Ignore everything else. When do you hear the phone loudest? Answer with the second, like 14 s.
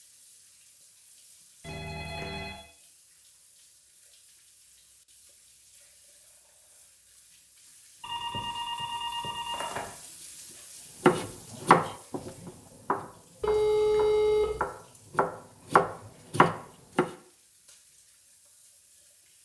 14 s.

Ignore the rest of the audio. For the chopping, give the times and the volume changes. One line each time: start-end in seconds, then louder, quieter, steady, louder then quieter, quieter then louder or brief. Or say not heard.
11.1-17.1 quieter then louder.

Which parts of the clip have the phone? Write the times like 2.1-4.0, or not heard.
1.6-2.6, 8.0-9.9, 13.4-14.6.